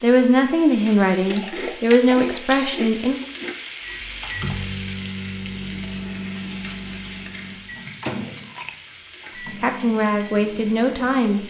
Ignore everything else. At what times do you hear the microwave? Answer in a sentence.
The microwave can be heard from 3.8 to 11.4 s.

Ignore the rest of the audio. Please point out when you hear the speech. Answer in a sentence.
The speech can be heard from 0.0 to 3.2 s and from 9.6 to 11.4 s.